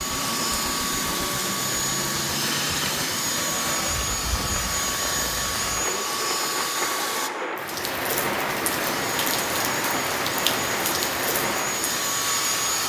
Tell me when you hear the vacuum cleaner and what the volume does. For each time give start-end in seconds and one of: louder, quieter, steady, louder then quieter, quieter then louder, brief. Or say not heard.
0.0-7.3 steady
8.8-12.8 louder.